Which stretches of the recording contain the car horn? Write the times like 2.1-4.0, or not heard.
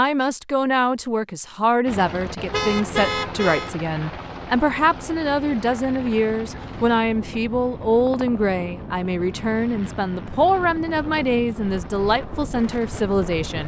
2.5-3.8.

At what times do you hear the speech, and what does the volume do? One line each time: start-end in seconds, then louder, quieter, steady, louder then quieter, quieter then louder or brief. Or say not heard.
0.0-13.6 steady.